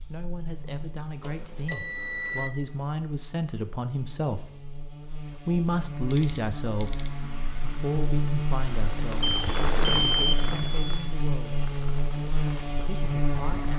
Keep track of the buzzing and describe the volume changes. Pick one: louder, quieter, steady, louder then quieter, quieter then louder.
louder.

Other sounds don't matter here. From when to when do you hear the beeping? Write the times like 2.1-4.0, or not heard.
1.2-2.5, 6.0-7.2, 9.3-11.1.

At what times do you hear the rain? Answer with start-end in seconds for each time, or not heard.
6.9-13.7.